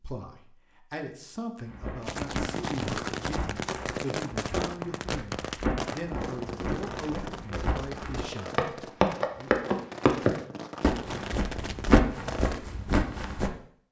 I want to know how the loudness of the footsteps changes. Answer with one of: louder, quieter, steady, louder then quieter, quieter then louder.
louder then quieter.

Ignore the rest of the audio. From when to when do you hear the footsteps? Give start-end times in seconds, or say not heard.
1.6-13.5.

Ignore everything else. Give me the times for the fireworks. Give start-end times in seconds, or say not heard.
2.0-12.6.